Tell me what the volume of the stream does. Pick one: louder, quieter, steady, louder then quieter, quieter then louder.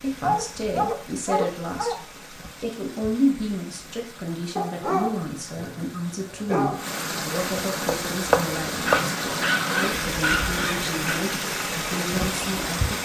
louder.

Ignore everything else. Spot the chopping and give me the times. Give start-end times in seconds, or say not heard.
7.8-9.1.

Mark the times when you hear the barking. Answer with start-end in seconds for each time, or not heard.
0.2-2.0, 4.5-6.8, 8.8-11.2.